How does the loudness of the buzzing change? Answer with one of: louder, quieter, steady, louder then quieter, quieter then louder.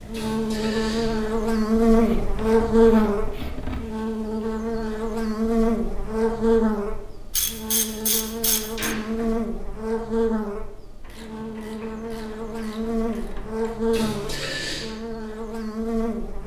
quieter.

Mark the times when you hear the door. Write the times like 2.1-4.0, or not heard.
0.1-1.2, 7.4-9.3, 13.9-14.9.